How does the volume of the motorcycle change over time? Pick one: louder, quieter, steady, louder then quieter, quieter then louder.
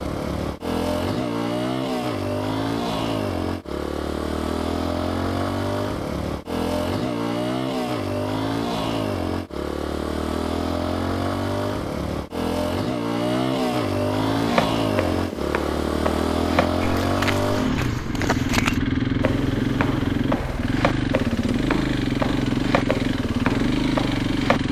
steady.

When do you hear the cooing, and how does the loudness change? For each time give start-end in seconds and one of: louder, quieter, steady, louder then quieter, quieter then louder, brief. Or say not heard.
not heard.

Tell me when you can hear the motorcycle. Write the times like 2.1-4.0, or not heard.
0.0-24.6.